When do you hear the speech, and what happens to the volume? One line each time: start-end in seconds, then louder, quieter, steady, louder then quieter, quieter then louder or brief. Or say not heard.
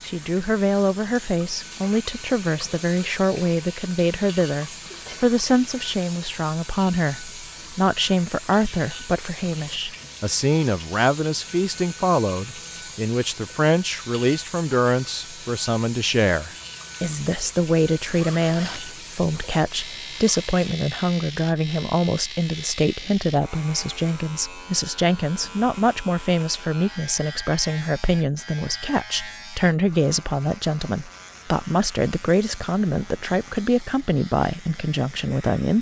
0.0-35.7 steady.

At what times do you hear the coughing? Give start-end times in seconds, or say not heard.
not heard.